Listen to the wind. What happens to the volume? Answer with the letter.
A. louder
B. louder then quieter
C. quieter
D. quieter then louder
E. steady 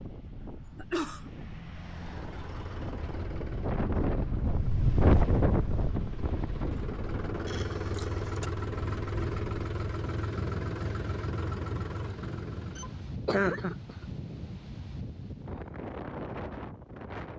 B.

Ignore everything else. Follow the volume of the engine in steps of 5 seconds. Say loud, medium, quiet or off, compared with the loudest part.
medium, loud, loud, off.